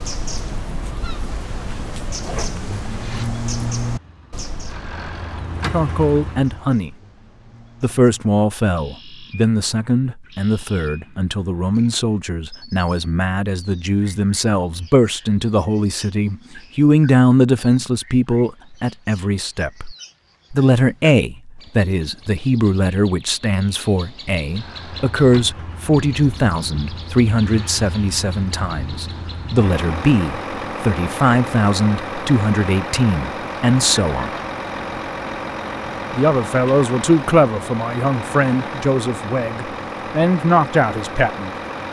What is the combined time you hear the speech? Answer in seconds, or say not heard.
33 s.